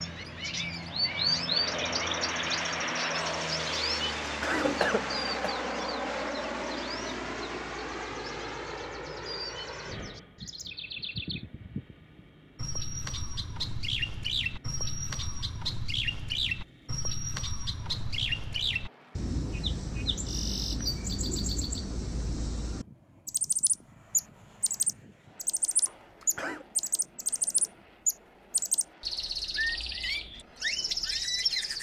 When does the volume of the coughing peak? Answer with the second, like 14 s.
5 s.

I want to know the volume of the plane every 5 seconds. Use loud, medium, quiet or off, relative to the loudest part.
loud, loud, quiet, quiet, quiet, quiet, quiet.